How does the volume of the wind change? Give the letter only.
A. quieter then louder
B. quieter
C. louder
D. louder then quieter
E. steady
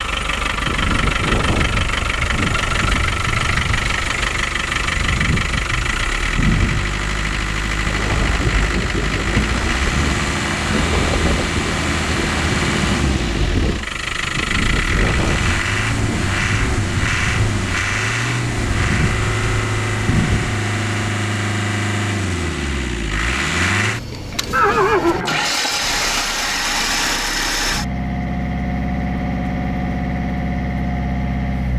E.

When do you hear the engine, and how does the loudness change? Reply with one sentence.
You can hear the engine from 0.0 to 31.7 s, at a steady volume.